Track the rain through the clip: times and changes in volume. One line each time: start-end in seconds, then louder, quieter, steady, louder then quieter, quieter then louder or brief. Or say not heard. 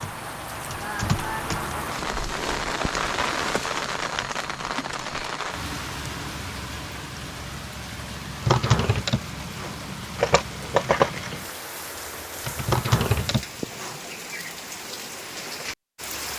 0.0-16.3 quieter.